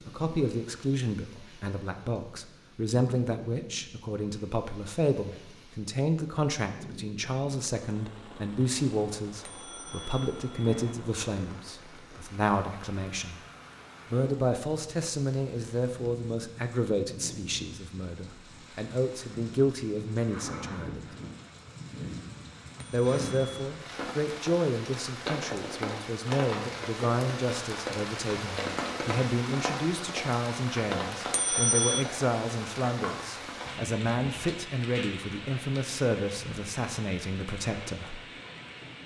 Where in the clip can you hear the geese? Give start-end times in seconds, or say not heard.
not heard.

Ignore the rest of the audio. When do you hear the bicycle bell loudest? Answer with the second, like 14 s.
32 s.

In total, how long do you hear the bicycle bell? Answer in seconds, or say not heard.
3 s.